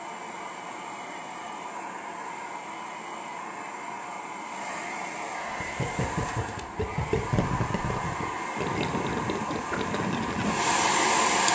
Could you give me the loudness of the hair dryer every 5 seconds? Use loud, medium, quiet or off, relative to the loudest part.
quiet, medium, loud.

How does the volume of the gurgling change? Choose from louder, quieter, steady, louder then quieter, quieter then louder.
steady.